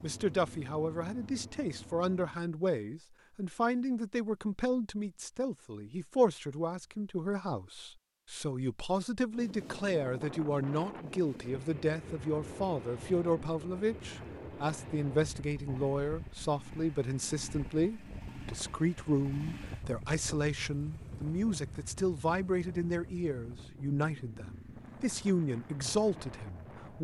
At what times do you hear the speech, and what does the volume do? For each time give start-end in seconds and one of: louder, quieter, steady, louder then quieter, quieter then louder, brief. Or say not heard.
0.0-26.9 steady.